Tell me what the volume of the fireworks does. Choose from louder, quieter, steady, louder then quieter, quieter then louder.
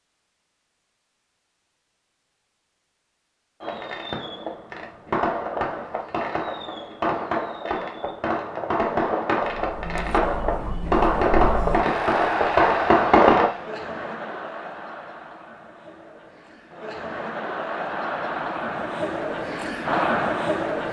louder.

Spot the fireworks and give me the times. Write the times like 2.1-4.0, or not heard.
3.6-13.5.